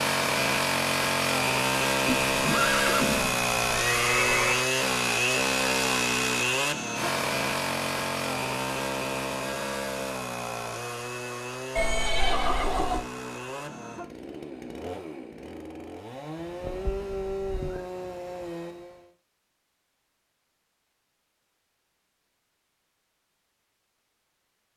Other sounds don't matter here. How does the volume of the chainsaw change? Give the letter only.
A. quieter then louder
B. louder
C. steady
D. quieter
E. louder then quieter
D.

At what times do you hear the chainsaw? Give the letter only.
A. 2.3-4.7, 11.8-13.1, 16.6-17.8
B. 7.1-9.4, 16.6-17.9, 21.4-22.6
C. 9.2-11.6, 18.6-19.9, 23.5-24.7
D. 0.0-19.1
D.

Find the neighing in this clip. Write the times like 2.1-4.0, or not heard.
2.3-4.7, 11.8-13.1, 16.6-17.8.